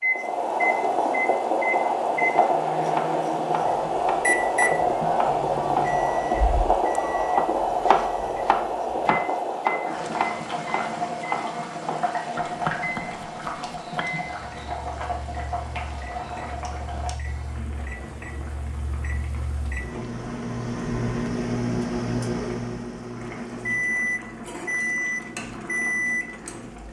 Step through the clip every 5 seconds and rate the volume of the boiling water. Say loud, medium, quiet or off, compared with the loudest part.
loud, loud, medium, quiet, quiet, quiet.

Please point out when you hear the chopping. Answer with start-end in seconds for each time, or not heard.
2.4-14.2.